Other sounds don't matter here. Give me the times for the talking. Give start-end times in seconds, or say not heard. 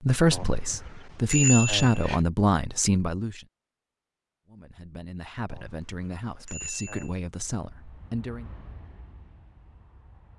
0.0-3.4, 4.5-8.4.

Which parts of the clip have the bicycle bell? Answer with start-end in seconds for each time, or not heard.
0.3-2.2, 5.5-7.1.